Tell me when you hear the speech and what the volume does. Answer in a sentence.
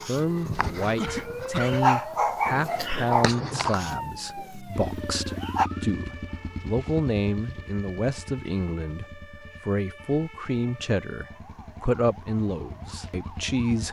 The speech can be heard from 0.1 to 13.8 s, at a steady volume.